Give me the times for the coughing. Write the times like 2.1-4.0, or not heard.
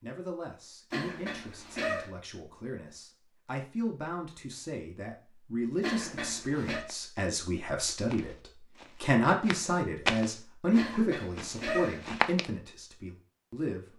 0.9-2.1, 5.8-6.8, 10.8-12.1.